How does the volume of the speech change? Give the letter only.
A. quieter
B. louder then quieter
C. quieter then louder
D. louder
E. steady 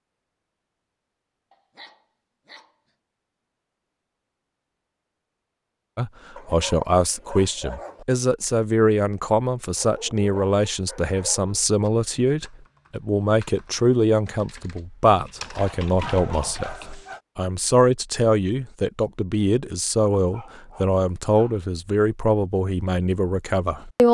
E.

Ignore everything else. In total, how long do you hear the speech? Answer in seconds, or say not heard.
18 s.